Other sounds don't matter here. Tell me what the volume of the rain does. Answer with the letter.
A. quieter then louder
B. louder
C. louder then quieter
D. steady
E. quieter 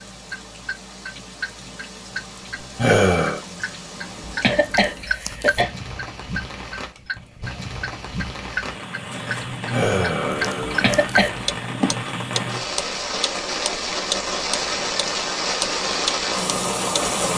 B.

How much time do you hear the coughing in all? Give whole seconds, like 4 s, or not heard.
2 s.